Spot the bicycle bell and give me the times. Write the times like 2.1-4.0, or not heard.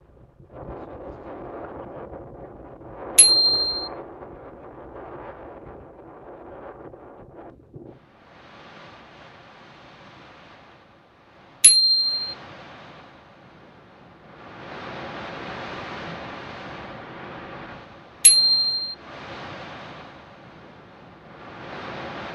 3.1-3.9, 11.6-12.2, 18.2-18.9.